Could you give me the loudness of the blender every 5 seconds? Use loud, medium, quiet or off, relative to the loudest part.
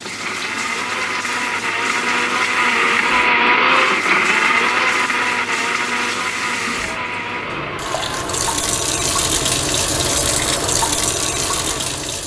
loud, medium, quiet.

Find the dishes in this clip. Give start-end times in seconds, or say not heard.
not heard.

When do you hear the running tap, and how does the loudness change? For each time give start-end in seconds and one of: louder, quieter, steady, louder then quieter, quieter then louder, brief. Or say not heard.
0.0-12.2 louder.